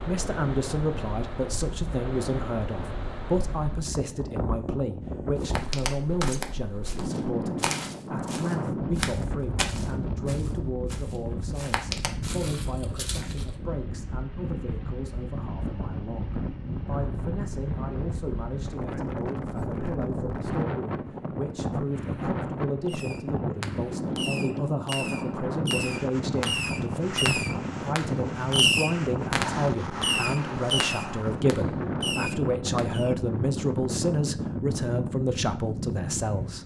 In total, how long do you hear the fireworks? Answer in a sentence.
The fireworks can be heard for 10 seconds in total.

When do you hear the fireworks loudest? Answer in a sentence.
The loudest moment of the fireworks is at 29 seconds.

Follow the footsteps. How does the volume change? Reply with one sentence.
The volume of the footsteps goes down, then up.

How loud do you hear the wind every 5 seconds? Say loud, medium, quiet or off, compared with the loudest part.
medium, loud, medium, loud, loud, loud, loud, loud.